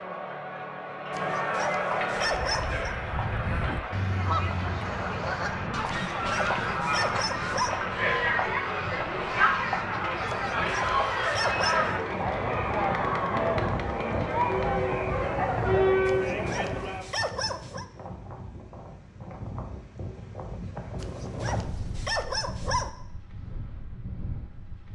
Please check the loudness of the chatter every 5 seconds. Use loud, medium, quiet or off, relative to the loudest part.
medium, loud, loud, loud, off.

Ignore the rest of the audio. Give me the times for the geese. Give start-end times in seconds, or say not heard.
2.2-11.4.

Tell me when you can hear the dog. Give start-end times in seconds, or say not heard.
1.1-3.0, 5.9-7.8, 10.2-12.0, 16.1-17.9, 21.0-22.9.